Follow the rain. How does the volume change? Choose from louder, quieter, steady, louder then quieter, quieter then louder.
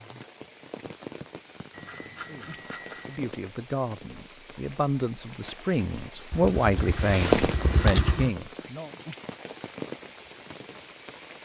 louder then quieter.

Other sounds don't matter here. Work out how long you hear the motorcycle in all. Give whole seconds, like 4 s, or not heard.
2 s.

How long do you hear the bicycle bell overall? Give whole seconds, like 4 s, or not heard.
3 s.